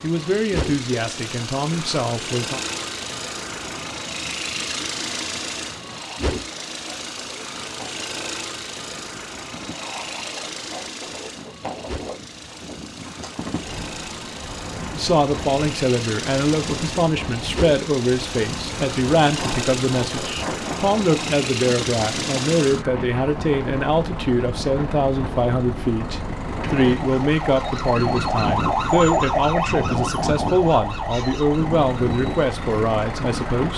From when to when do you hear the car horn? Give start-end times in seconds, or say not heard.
not heard.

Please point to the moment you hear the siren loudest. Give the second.
29 s.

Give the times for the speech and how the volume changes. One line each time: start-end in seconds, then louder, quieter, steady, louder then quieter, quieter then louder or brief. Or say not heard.
0.0-2.6 brief
14.9-33.7 steady.